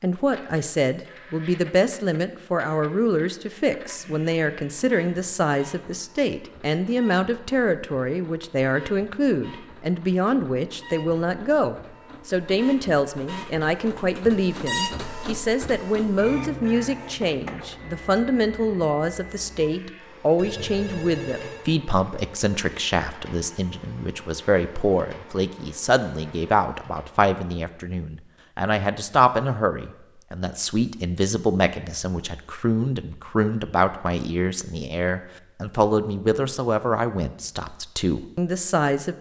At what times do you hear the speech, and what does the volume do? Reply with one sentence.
You can hear the speech from 0.0 to 39.1 s, at a steady volume.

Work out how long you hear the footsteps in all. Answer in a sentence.
You can't hear the footsteps here.